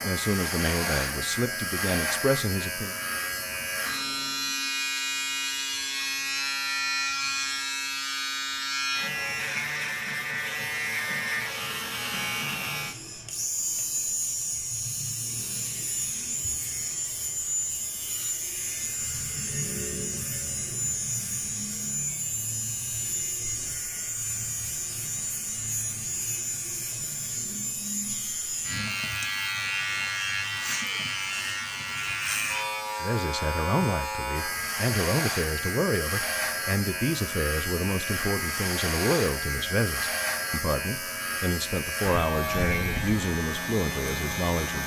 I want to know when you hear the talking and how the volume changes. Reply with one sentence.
The talking can be heard briefly from 0.0 to 3.0 s; and from 33.0 to 44.8 s, at a steady volume.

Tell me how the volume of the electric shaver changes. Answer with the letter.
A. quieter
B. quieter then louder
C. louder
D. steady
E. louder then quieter
D.